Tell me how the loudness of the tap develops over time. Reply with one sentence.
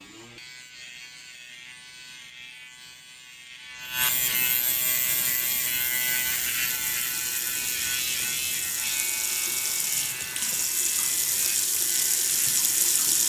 The volume of the tap goes up.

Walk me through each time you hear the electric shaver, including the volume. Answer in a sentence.
You can hear the electric shaver from 0.0 to 13.0 s, getting louder then quieter.